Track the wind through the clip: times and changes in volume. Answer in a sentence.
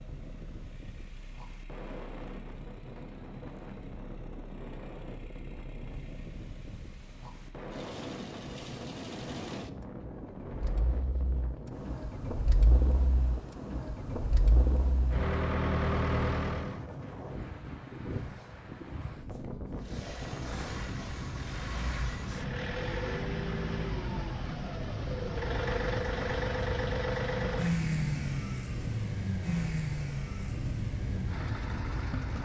You can hear the wind from 0.0 to 32.3 s, getting louder.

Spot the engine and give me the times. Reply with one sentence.
You can hear the engine from 0.0 to 16.8 s and from 19.8 to 32.3 s.